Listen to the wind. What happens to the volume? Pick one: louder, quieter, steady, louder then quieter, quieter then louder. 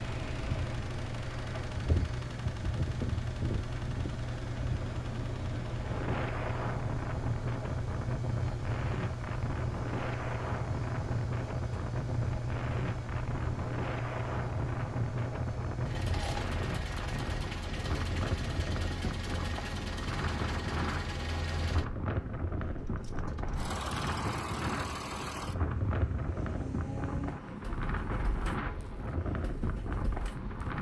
steady.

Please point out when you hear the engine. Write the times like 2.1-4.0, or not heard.
0.0-30.7.